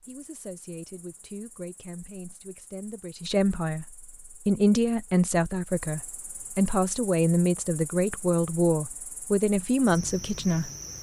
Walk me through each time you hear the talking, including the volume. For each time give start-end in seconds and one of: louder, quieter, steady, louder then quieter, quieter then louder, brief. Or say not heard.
0.1-10.7 louder.